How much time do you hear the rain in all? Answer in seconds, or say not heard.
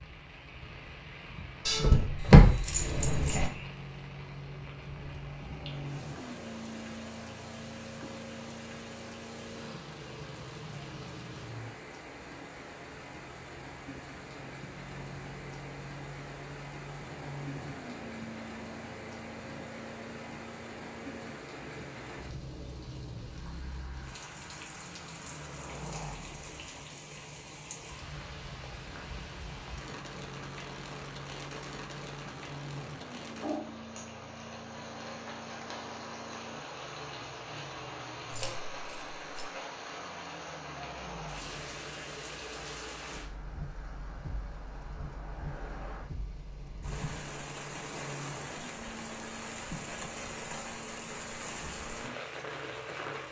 53 s.